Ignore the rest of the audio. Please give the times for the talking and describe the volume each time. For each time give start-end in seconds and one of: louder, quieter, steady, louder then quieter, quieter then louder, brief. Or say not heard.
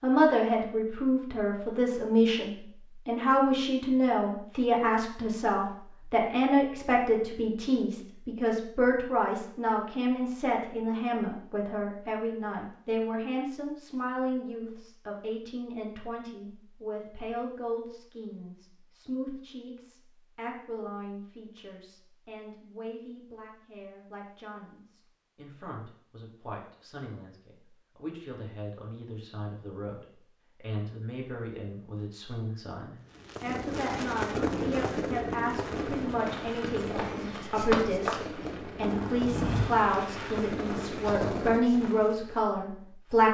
0.0-43.2 quieter then louder.